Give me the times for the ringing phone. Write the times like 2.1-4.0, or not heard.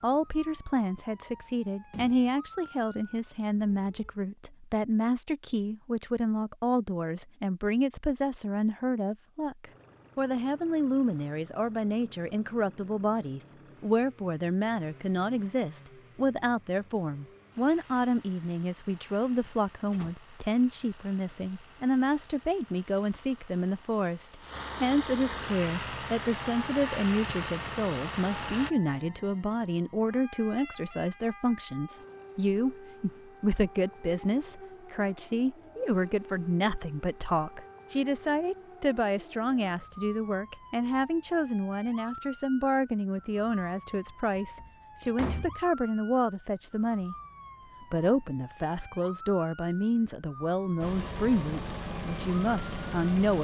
not heard.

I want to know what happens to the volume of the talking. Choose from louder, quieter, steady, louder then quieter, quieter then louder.
steady.